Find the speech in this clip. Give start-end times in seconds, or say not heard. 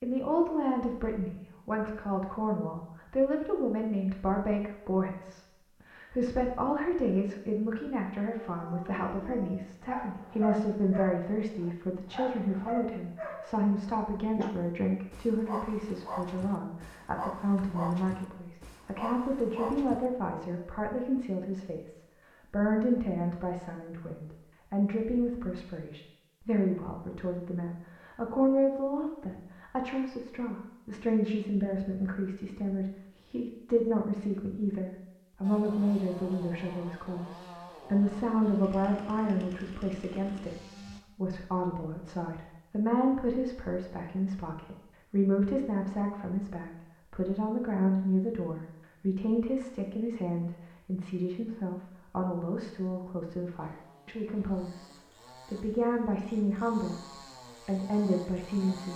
0.0-57.0, 57.6-58.9.